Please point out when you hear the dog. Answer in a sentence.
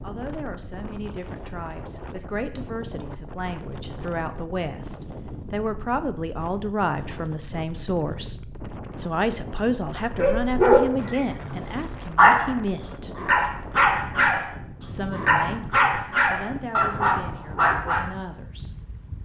The dog can be heard from 10.0 to 18.1 s.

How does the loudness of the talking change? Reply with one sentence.
The volume of the talking goes up, then down.